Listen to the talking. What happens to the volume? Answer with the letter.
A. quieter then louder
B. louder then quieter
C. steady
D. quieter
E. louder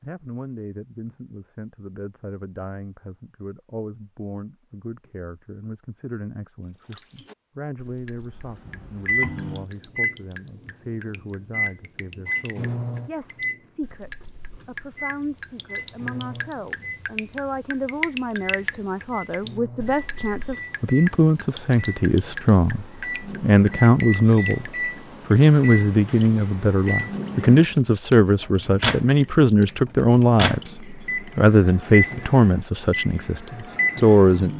E.